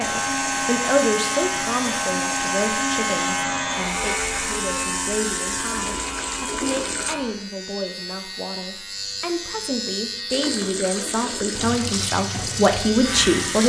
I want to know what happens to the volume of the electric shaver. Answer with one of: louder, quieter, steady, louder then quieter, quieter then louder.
quieter.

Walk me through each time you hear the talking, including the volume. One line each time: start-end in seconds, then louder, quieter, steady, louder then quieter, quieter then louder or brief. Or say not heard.
0.0-13.6 quieter then louder.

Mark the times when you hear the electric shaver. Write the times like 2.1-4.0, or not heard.
0.0-13.6.